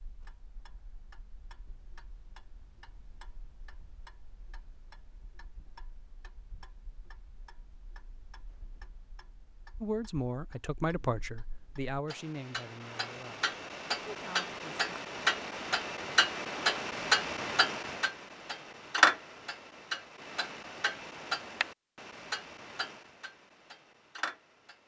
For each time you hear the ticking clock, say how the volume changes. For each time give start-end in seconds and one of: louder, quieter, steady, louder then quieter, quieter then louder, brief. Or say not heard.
0.0-24.8 louder then quieter.